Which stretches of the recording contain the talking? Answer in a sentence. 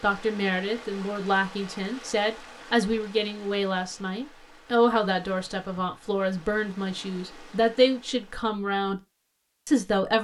You can hear the talking from 0.0 to 9.0 s and from 9.7 to 10.1 s.